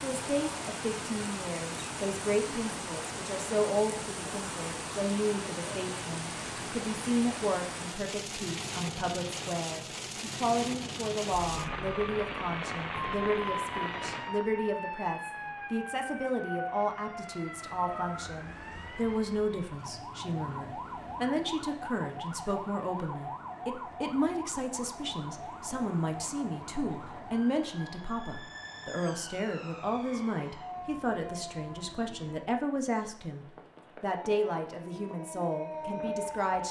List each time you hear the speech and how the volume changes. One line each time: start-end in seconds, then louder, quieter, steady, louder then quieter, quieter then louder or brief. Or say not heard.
0.0-36.6 steady.